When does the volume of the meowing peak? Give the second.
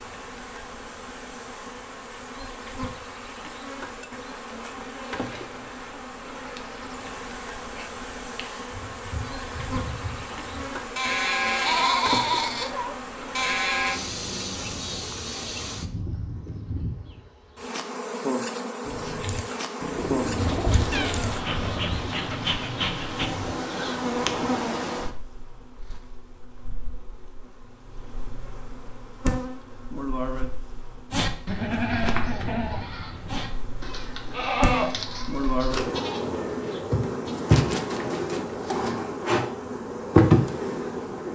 21 s.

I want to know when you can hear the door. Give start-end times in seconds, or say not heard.
not heard.